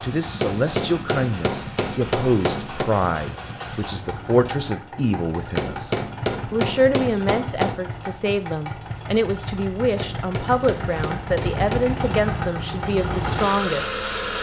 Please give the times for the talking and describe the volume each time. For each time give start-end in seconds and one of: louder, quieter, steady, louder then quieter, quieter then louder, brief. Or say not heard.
0.0-14.3 steady.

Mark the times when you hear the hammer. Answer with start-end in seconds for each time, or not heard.
0.4-3.0, 5.5-7.8, 9.9-11.9.